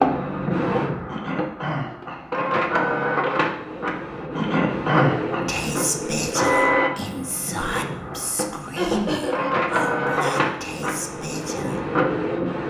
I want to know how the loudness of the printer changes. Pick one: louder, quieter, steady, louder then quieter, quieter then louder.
steady.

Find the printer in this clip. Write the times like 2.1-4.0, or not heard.
0.0-12.6.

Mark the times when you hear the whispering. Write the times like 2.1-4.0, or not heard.
5.5-11.8.